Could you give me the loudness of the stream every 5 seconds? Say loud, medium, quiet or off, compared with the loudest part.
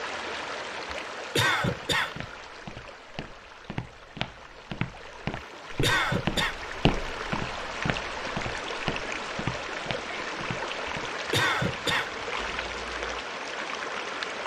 medium, loud, loud.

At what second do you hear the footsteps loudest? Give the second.
7 s.